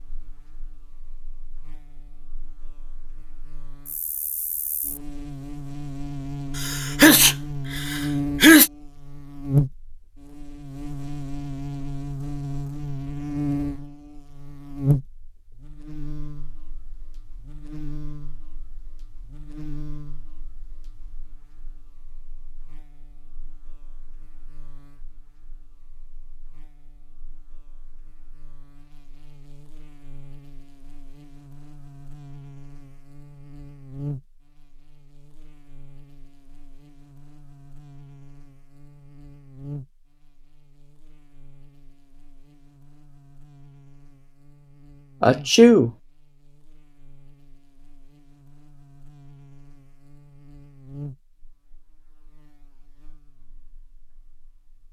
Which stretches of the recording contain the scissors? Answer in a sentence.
You can't hear the scissors here.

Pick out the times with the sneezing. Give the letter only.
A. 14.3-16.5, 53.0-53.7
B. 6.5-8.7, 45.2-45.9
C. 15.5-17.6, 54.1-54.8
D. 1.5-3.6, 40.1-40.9
B.